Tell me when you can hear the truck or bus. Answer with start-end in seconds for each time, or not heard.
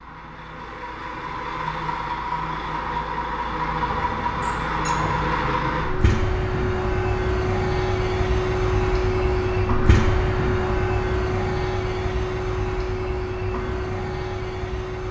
0.0-15.0.